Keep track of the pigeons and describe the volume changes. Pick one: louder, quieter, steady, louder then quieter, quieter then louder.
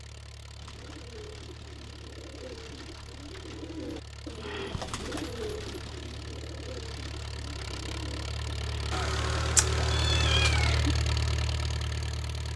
louder then quieter.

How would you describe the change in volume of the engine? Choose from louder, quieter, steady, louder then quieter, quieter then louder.
louder.